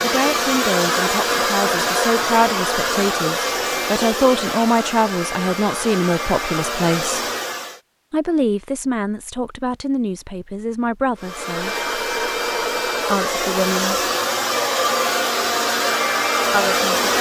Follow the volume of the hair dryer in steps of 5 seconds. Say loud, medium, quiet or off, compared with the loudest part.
loud, medium, loud, loud.